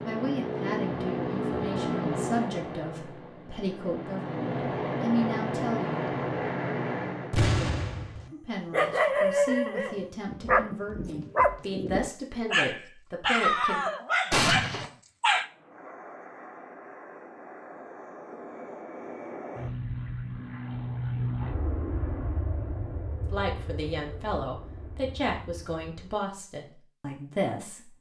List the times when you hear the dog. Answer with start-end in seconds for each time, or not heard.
8.7-15.4.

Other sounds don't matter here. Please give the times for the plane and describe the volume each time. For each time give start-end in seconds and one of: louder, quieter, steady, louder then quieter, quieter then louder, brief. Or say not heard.
0.0-7.5 quieter then louder
15.3-26.2 louder then quieter.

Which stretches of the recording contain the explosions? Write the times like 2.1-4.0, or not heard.
7.3-8.3, 14.3-14.9.